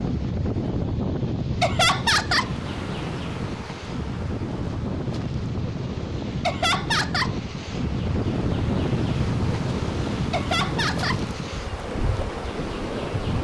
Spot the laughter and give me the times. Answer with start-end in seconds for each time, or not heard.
1.6-2.5, 6.4-7.3, 10.3-11.2.